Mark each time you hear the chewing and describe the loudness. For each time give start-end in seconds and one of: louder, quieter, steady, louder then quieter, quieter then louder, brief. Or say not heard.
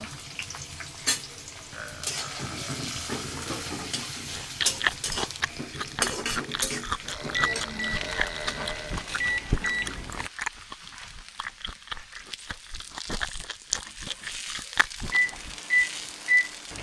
4.2-15.6 quieter then louder.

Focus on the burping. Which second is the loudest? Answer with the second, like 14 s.
8 s.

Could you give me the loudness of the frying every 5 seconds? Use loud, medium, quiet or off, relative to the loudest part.
loud, loud, medium, medium.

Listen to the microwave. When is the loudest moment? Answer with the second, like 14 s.
16 s.